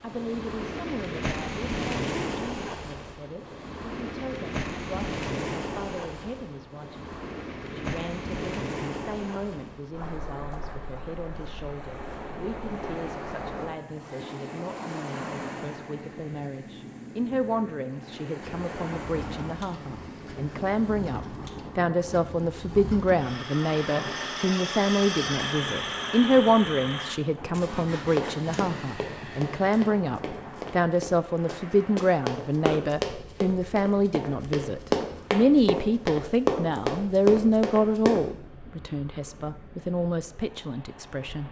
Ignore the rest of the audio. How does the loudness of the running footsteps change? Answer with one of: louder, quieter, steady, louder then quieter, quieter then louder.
louder.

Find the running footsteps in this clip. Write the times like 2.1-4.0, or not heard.
28.1-38.2.